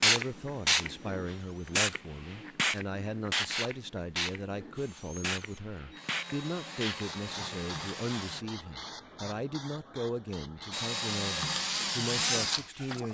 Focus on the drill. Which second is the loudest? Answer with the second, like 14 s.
12 s.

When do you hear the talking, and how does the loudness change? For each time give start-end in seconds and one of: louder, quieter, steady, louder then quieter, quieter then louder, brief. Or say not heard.
0.0-13.0 steady.